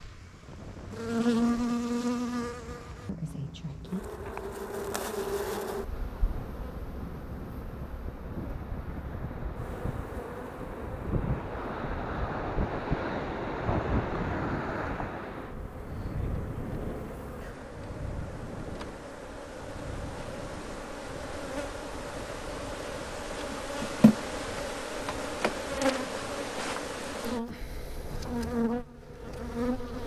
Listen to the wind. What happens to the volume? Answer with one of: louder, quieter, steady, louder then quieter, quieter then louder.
louder then quieter.